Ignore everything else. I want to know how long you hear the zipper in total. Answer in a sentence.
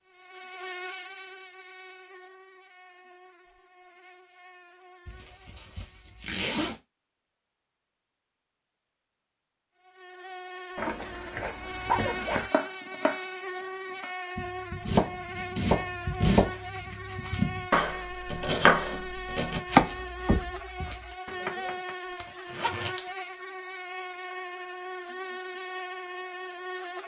The zipper can be heard for 4 seconds in total.